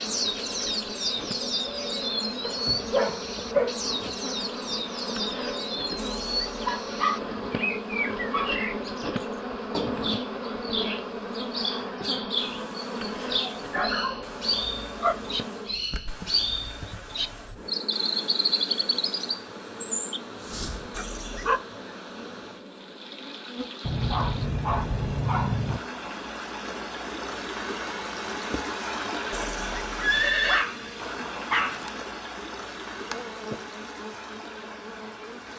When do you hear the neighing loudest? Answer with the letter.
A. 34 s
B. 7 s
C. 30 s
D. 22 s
C.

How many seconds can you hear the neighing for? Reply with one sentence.
You can hear the neighing for 3 seconds altogether.